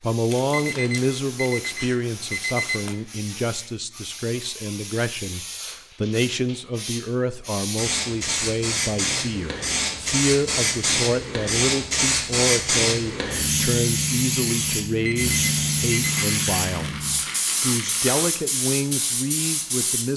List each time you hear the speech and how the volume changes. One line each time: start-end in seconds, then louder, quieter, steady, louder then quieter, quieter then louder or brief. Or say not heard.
0.0-20.1 steady.